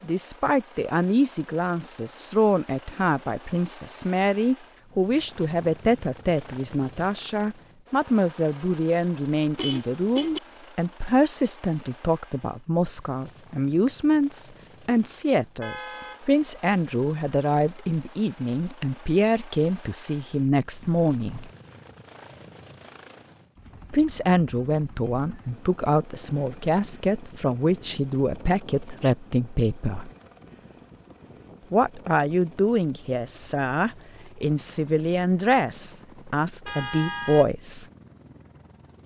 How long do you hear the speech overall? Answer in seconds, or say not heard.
34 s.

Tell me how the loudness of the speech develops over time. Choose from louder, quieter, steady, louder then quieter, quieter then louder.
steady.